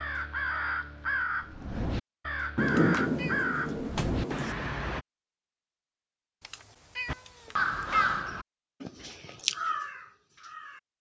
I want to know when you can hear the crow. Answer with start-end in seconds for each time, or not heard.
0.0-5.0, 7.0-10.8.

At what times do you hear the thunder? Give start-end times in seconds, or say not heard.
2.5-4.5.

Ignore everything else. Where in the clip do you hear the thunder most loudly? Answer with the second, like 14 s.
3 s.